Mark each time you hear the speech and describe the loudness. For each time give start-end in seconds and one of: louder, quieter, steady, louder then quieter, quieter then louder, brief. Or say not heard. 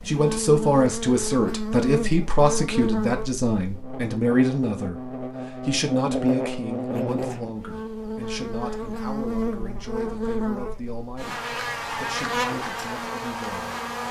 0.0-13.8 quieter.